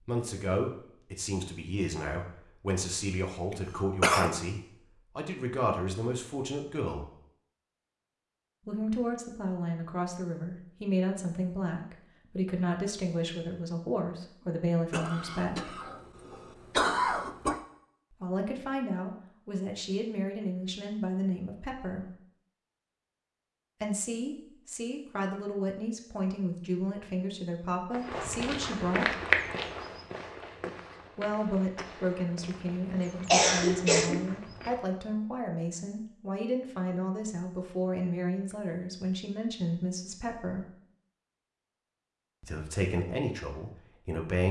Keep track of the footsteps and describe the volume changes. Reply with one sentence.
The loudness of the footsteps goes down.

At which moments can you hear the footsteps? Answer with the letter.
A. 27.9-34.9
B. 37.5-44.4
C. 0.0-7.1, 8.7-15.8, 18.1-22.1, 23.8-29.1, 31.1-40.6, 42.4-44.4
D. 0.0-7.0
A.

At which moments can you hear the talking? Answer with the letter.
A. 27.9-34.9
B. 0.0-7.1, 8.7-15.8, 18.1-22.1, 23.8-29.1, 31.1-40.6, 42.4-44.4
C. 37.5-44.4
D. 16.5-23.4
B.